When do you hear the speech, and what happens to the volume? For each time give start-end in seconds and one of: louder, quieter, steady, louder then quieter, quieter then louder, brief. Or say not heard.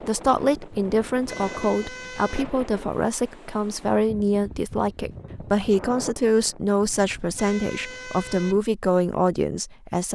0.1-10.1 steady.